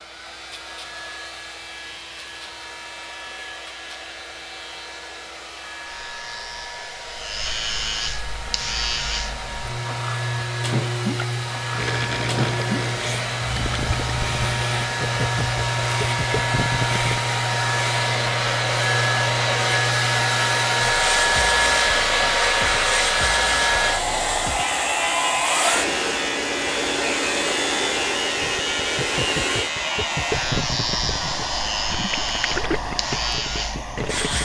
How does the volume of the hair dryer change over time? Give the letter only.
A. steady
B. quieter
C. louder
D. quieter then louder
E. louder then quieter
E.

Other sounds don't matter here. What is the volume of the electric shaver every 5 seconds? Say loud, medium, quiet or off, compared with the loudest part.
quiet, medium, loud, loud, loud, loud, loud.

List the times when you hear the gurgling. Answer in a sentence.
The gurgling can be heard from 11.2 to 17.3 s and from 28.4 to 34.4 s.